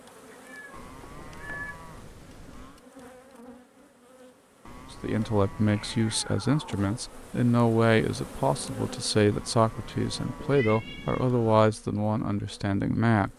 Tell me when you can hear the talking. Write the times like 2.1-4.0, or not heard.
5.0-13.3.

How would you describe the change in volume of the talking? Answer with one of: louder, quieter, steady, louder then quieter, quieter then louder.
steady.